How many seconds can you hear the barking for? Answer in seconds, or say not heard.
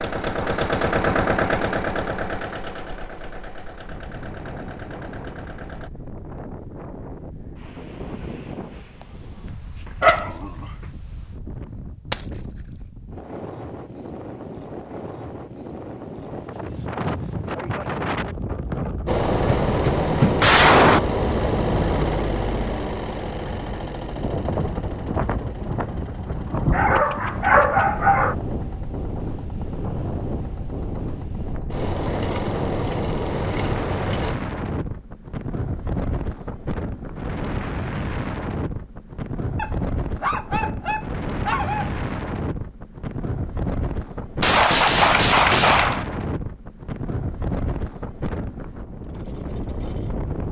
5 s.